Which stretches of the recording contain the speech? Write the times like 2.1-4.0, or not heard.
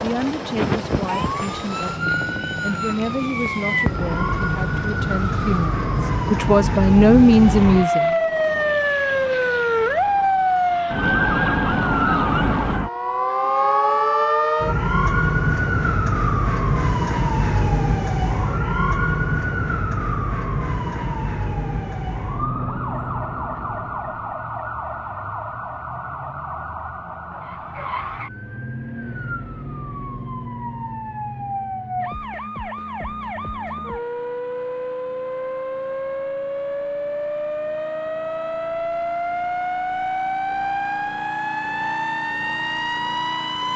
0.0-8.2.